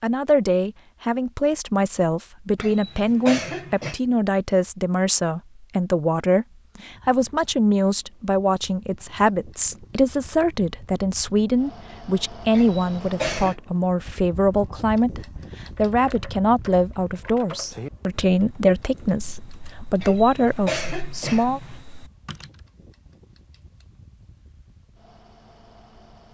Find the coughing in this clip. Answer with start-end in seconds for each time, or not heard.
2.5-4.0, 12.5-13.6, 20.0-21.9.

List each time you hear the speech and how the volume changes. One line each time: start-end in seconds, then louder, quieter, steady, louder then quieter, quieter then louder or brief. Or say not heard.
0.0-21.6 steady.